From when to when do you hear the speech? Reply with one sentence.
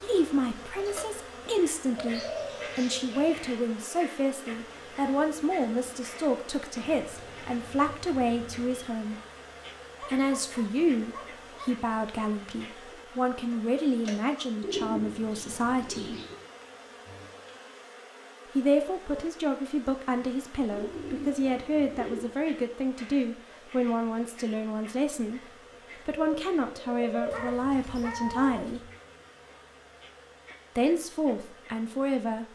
The speech can be heard from 0.0 to 9.2 s, from 10.0 to 16.1 s, from 18.6 to 28.9 s and from 30.8 to 32.4 s.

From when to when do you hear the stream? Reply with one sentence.
You can't hear the stream here.